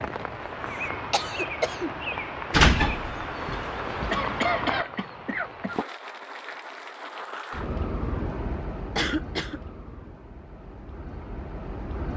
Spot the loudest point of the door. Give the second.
3 s.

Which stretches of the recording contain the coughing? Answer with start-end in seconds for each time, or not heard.
1.1-1.9, 4.1-5.8, 8.9-9.6.